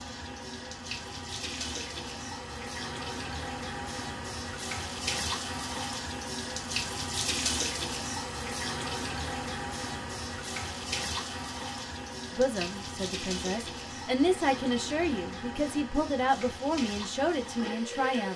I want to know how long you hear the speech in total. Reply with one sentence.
You can hear the speech for 6 seconds altogether.